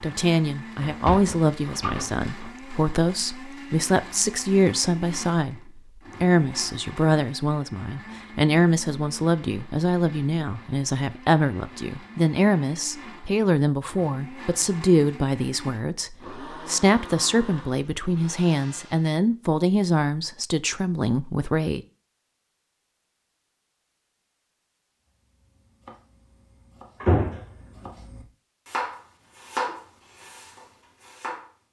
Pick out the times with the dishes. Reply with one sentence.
The dishes can't be heard in this clip.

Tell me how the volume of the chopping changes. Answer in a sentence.
The volume of the chopping goes up, then down.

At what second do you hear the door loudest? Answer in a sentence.
The volume of the door peaks at 27 seconds.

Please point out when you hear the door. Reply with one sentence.
The door can be heard from 0.8 to 2.5 s and from 27.0 to 27.9 s.